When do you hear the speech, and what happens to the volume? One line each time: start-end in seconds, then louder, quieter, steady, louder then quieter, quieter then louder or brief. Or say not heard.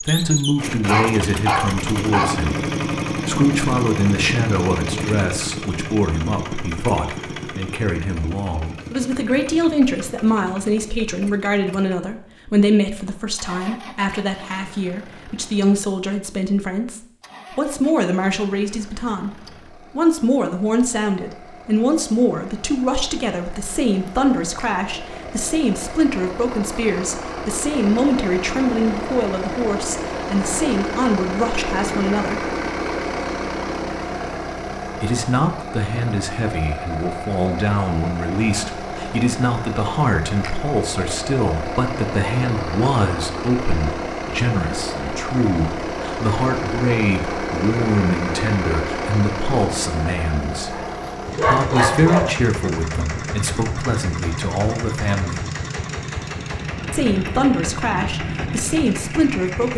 0.0-32.5 steady
35.0-55.5 steady
56.9-59.7 brief.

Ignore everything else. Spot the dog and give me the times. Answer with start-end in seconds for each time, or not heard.
0.8-2.3, 50.7-52.4.